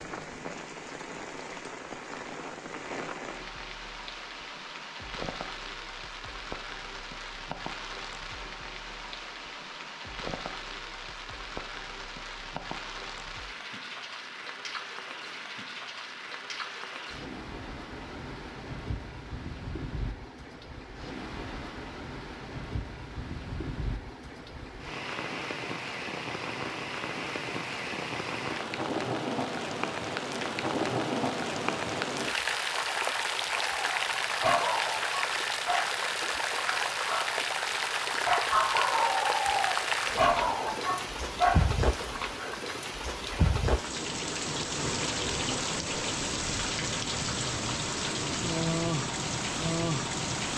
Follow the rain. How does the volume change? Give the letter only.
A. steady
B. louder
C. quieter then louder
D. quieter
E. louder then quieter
B.